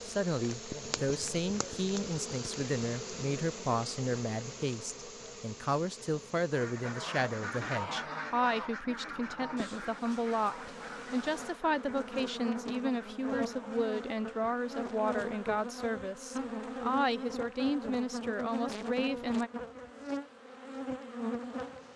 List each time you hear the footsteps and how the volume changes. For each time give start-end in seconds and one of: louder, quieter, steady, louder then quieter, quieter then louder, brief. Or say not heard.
not heard.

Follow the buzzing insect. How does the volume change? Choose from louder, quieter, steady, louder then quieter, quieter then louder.
quieter then louder.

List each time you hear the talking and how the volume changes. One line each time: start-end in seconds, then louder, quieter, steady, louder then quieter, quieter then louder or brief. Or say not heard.
0.1-19.5 steady.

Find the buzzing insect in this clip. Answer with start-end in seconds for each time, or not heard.
0.0-21.9.